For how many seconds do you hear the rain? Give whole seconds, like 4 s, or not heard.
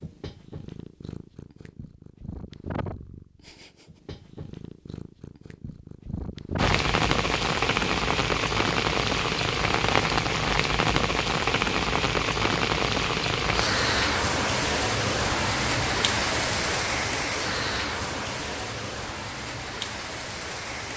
14 s.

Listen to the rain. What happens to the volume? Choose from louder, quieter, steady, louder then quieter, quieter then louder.
quieter.